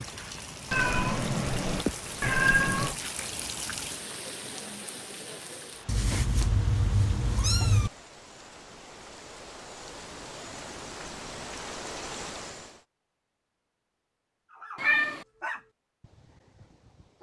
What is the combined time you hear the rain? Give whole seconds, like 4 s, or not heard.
13 s.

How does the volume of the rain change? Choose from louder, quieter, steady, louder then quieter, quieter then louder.
quieter then louder.